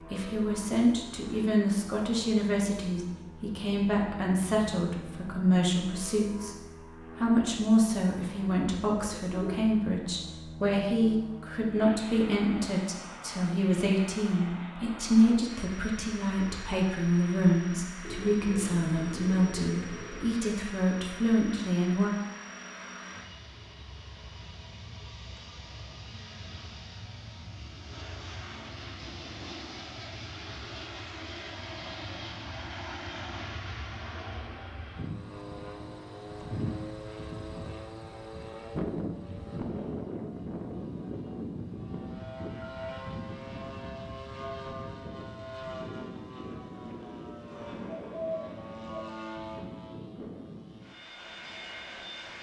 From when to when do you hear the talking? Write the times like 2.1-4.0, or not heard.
0.0-6.5, 7.2-22.1.